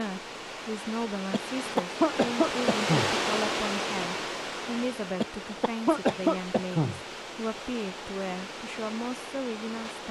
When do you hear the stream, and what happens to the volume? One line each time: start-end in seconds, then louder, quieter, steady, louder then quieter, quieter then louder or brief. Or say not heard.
0.0-10.0 louder then quieter.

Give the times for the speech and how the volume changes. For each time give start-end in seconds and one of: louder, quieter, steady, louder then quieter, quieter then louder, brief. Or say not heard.
0.0-10.0 steady.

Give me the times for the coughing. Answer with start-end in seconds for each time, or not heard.
1.3-3.1, 5.2-7.0.